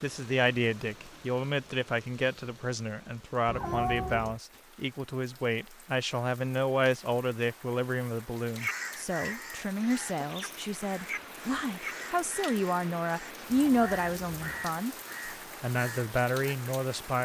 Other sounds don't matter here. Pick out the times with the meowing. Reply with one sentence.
The meowing can be heard from 3.5 to 4.4 s and from 13.5 to 14.7 s.